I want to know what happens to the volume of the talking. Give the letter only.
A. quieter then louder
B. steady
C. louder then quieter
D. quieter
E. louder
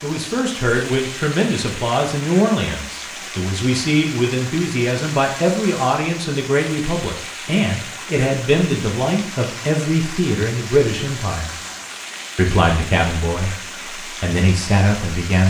B.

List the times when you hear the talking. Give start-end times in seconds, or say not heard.
0.0-11.6, 12.3-15.4.